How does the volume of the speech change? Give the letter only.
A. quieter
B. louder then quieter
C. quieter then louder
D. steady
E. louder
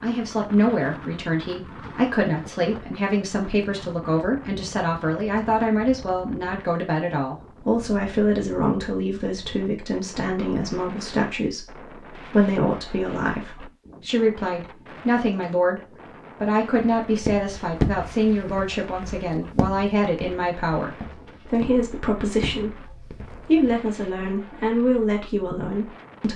D.